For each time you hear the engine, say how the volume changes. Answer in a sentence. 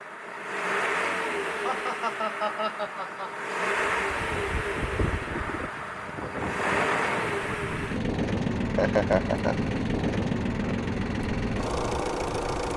The engine can be heard from 0.0 to 12.7 s, at a steady volume.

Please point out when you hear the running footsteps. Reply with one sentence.
You can't hear the running footsteps here.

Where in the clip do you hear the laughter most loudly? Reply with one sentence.
The volume of the laughter peaks at 9 seconds.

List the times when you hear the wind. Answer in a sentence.
The wind can be heard from 3.8 to 12.7 s.